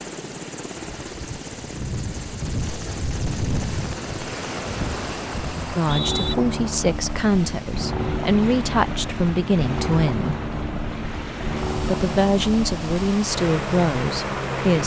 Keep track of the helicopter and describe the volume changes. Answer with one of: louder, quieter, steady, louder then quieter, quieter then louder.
steady.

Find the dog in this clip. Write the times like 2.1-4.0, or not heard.
not heard.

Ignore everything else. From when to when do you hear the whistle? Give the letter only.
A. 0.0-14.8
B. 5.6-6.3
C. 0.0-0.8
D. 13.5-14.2
B.